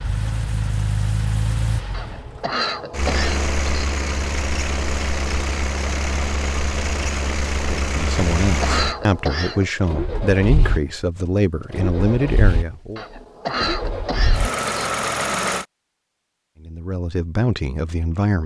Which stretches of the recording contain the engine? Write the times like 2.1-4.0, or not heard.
0.0-15.7.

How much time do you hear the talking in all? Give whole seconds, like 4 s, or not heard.
7 s.